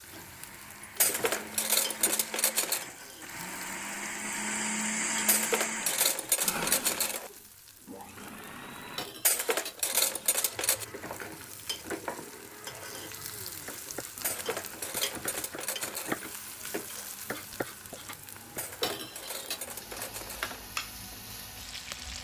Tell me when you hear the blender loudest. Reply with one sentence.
The volume of the blender peaks at 5 seconds.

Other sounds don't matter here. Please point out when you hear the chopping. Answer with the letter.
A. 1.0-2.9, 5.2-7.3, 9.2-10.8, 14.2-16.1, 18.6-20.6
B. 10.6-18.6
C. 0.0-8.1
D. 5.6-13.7
B.